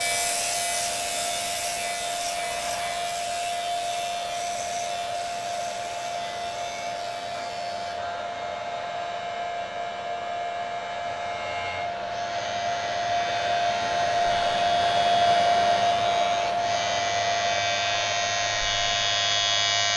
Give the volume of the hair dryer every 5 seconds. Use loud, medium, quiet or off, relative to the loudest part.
medium, medium, loud, loud.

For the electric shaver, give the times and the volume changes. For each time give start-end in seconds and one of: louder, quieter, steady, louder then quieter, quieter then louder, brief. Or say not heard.
0.0-19.9 quieter then louder.